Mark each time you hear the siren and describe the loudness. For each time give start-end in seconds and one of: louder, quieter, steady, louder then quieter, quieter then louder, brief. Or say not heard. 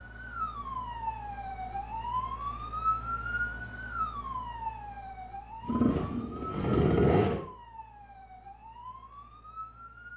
0.0-10.1 quieter.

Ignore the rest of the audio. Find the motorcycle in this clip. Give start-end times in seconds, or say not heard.
5.6-7.5.